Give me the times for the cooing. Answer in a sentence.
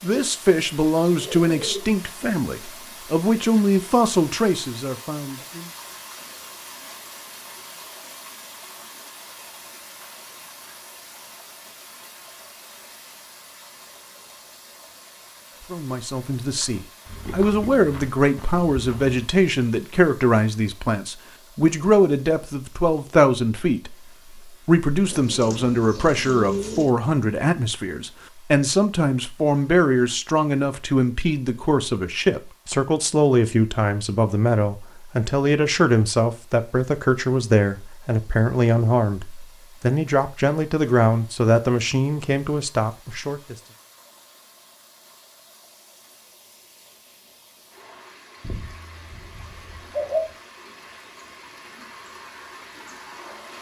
The cooing can be heard from 1.1 to 1.9 s, from 25.0 to 26.9 s and from 48.4 to 50.4 s.